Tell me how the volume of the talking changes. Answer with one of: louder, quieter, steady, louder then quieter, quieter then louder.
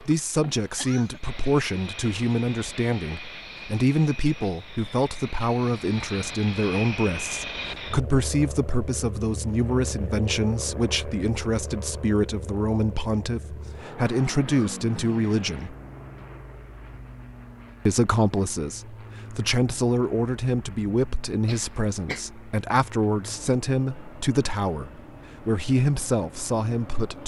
steady.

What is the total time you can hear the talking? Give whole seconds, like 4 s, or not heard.
25 s.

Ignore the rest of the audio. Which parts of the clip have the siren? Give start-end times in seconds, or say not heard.
not heard.